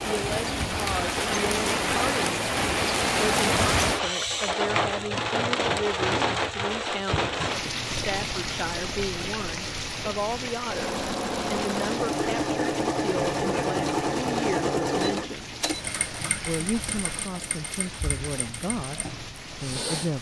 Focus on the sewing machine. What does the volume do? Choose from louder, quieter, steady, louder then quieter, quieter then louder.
quieter.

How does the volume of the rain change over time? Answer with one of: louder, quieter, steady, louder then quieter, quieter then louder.
quieter.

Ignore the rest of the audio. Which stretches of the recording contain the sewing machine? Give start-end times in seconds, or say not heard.
10.6-20.1.